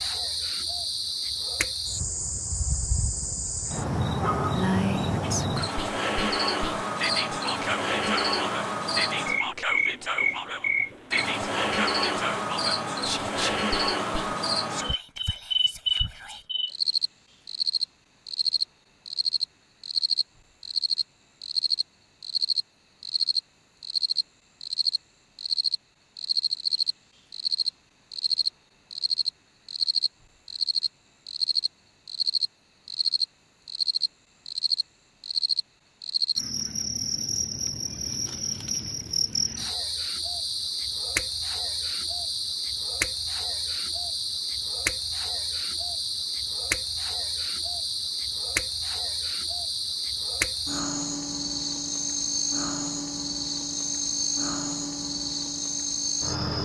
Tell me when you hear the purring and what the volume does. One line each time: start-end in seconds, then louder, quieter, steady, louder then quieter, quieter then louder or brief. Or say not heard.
not heard.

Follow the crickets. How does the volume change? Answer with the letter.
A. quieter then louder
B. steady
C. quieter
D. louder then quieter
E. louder
B.